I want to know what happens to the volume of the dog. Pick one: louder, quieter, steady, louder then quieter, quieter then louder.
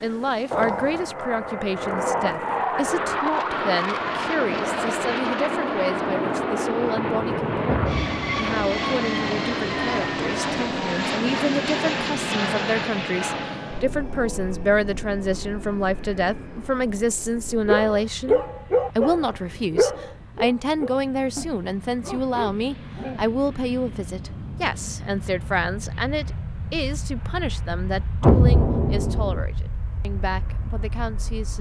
quieter.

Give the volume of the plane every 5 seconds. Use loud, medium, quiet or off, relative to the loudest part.
loud, loud, loud, quiet, quiet, medium, quiet.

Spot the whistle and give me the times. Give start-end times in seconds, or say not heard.
not heard.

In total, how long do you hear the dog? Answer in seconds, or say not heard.
6 s.